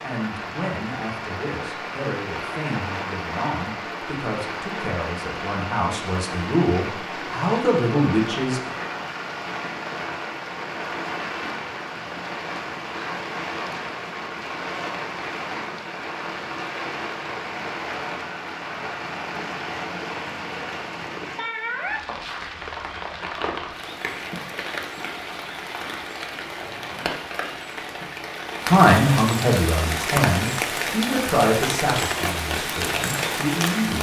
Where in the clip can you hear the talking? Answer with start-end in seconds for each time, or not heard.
0.0-8.6, 28.7-33.9.